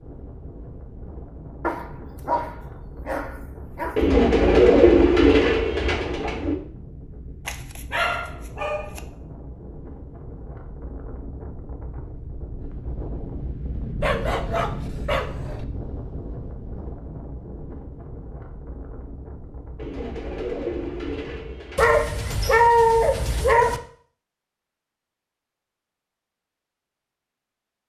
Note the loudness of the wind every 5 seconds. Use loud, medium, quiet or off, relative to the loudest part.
medium, medium, loud, loud, medium, off.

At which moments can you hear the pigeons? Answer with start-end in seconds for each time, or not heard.
4.0-6.5, 19.8-21.9.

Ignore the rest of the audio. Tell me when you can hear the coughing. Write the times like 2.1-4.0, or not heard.
not heard.